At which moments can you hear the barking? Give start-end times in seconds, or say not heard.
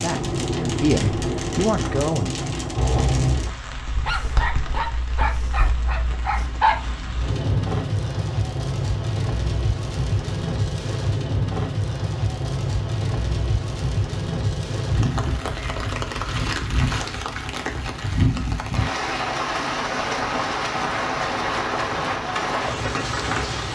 4.0-6.8.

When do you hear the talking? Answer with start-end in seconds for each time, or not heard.
0.0-2.4.